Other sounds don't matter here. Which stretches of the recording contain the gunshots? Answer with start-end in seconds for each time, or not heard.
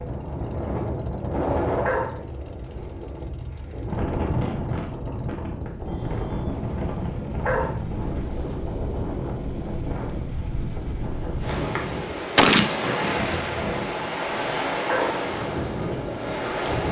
12.3-13.6.